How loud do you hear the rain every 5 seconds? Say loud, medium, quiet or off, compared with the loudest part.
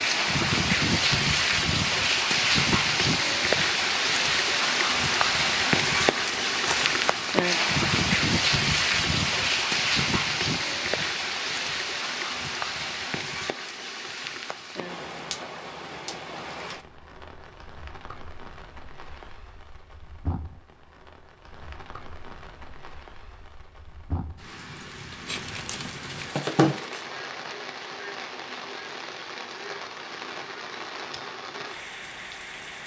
loud, loud, medium, quiet, quiet, quiet, quiet.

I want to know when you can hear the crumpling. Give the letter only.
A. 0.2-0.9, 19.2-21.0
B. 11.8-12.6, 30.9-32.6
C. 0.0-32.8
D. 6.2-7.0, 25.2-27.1
D.